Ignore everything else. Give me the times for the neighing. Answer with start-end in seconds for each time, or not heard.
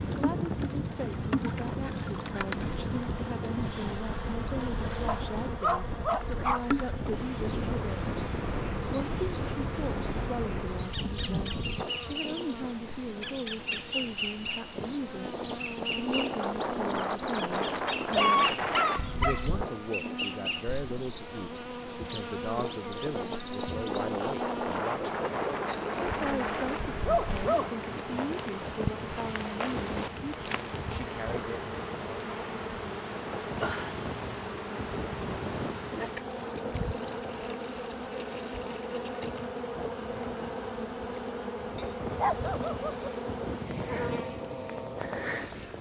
not heard.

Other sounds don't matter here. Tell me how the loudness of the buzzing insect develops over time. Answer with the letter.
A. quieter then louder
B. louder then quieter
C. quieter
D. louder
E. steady
E.